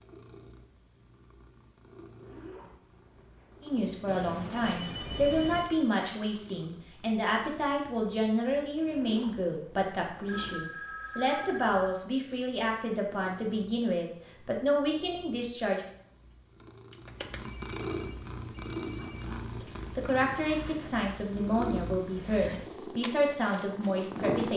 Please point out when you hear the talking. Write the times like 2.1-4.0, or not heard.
3.6-15.8, 19.6-24.5.